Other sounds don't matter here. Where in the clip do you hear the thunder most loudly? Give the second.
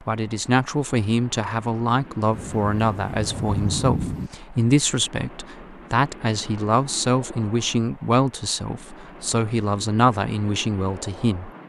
4 s.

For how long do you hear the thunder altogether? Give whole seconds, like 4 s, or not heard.
2 s.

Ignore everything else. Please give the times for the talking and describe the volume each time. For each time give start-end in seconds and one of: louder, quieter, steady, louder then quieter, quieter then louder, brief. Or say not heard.
0.1-11.5 steady.